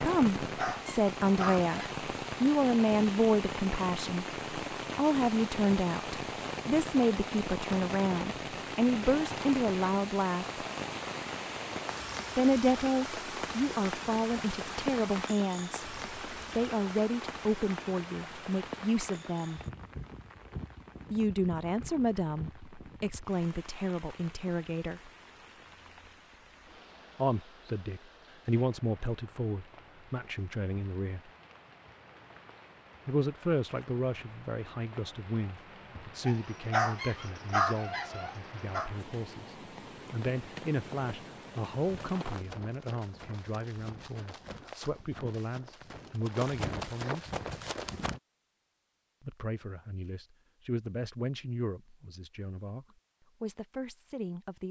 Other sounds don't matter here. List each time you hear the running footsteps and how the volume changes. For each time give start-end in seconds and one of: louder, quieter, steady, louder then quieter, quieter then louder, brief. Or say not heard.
42.0-48.2 louder.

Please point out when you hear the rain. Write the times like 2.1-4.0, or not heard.
0.0-42.5.